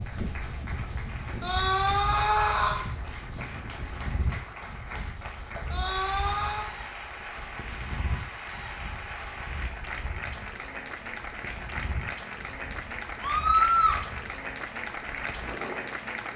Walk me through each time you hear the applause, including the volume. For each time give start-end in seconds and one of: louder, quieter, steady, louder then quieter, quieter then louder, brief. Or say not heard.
0.0-16.3 louder.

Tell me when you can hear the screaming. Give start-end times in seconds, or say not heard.
1.4-2.8, 5.7-6.7, 13.2-14.0.